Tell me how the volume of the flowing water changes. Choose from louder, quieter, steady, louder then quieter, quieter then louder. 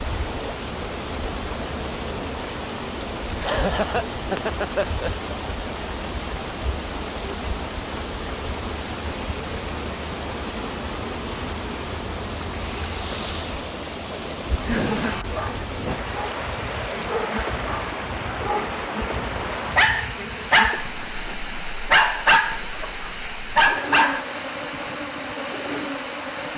steady.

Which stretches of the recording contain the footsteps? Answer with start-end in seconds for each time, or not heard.
not heard.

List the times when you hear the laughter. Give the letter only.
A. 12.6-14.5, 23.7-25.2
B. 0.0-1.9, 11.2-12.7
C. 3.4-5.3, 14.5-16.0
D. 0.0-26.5
C.